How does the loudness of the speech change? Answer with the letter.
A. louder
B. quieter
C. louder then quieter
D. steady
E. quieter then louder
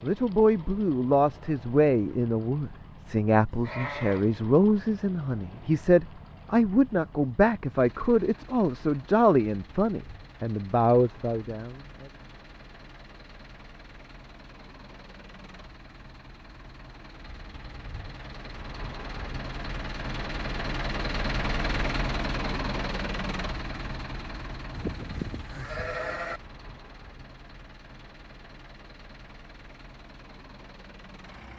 D.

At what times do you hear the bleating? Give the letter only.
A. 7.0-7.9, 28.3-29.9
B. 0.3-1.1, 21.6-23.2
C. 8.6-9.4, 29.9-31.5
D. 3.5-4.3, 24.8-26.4
D.